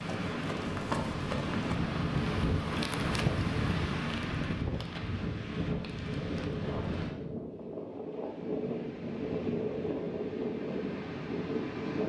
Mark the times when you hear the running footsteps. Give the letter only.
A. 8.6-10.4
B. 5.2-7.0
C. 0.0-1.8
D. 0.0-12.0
C.